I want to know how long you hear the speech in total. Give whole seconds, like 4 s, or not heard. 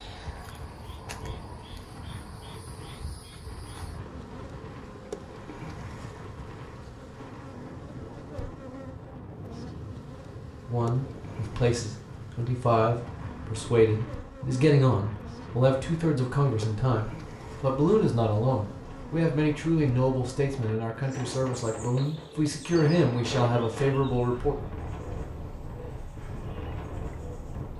14 s.